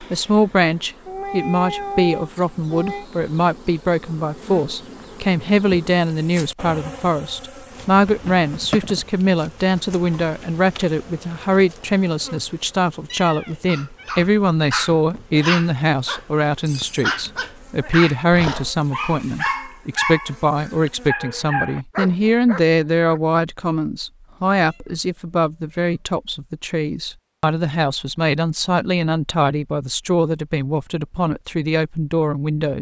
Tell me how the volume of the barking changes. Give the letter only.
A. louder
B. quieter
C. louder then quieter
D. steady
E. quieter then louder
D.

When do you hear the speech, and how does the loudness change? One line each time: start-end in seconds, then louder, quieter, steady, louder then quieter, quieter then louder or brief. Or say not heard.
0.0-32.7 steady.